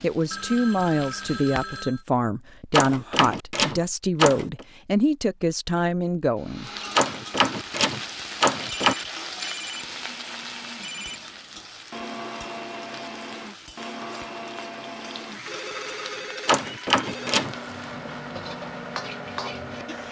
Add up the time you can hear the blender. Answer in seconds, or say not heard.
14 s.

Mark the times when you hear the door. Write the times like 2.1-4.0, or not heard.
2.7-4.7, 7.0-8.9, 16.4-17.6.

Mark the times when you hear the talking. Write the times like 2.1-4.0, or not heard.
0.0-6.7.